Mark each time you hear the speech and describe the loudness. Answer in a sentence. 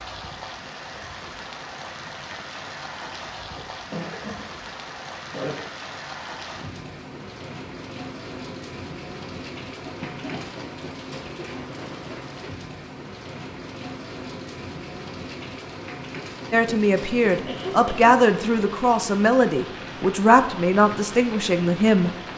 You can hear the speech from 16.5 to 22.1 s, at a steady volume.